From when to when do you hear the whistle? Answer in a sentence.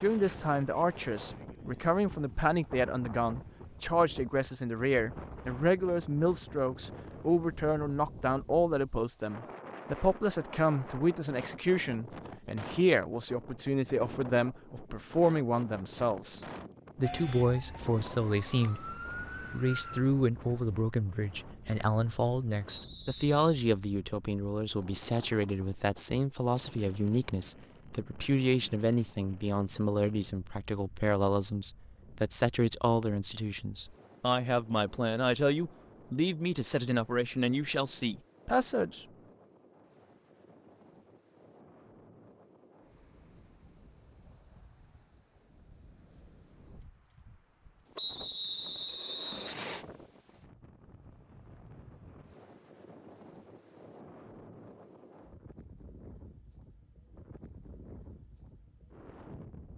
You can hear the whistle from 22.6 to 23.4 s and from 48.0 to 49.9 s.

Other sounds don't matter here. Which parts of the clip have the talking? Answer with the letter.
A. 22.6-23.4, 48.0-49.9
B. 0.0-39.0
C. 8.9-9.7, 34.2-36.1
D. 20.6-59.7
B.